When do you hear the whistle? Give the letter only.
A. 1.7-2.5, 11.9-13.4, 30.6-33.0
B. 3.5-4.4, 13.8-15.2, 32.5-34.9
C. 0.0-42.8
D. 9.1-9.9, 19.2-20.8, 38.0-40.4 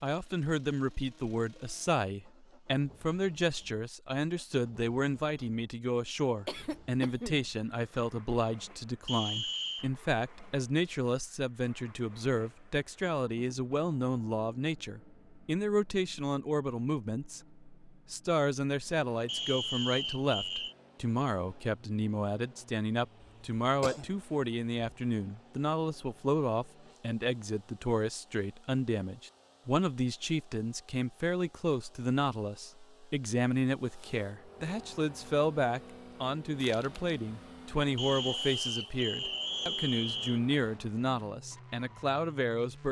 D.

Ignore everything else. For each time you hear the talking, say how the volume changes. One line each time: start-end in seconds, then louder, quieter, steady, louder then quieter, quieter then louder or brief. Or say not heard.
0.0-42.8 steady.